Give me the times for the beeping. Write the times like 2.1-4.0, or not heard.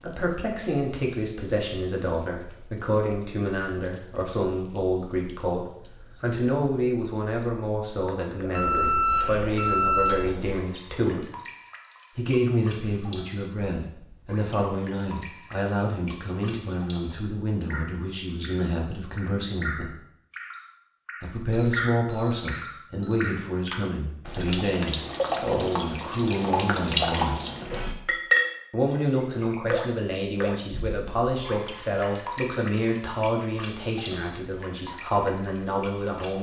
8.6-10.6, 21.2-23.2.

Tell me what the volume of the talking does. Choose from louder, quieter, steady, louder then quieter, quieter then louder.
steady.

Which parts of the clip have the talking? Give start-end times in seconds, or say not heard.
0.0-11.2, 12.2-19.9, 21.2-27.6, 28.7-36.3.